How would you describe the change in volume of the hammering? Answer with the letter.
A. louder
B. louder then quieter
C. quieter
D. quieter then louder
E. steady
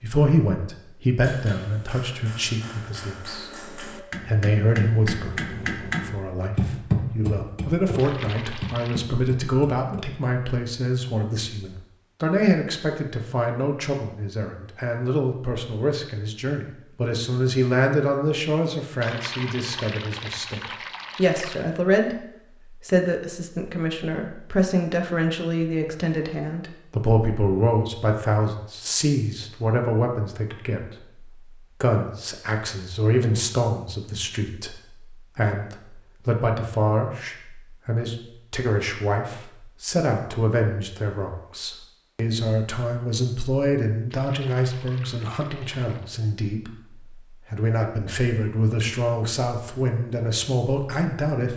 B.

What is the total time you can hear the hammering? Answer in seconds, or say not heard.
9 s.